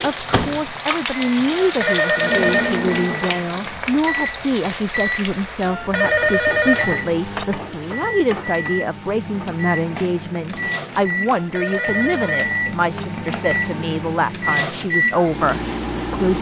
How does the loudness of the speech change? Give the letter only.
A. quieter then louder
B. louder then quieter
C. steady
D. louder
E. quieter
C.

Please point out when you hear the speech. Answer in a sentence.
You can hear the speech from 0.0 to 16.3 s.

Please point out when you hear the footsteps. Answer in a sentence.
The footsteps can't be heard in this clip.